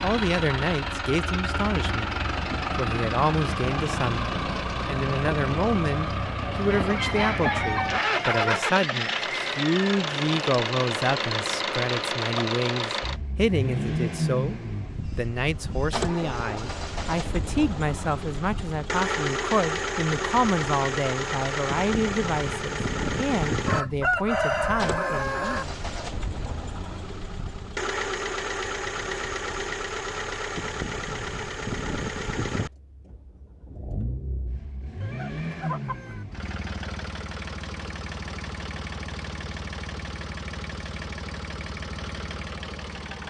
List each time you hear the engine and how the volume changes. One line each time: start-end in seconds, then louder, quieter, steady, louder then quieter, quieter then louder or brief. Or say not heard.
0.0-43.2 quieter.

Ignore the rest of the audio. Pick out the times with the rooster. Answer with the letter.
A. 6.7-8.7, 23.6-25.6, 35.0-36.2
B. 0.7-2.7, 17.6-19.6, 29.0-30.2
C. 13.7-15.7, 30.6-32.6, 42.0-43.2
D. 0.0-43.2
A.